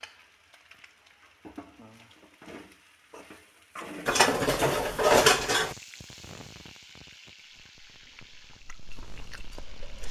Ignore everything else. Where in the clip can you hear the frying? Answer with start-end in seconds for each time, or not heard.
0.0-10.0.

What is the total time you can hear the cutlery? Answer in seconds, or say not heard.
2 s.